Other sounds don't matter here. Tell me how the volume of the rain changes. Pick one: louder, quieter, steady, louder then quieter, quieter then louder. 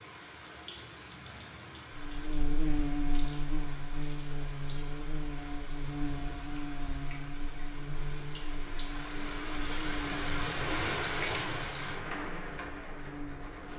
louder.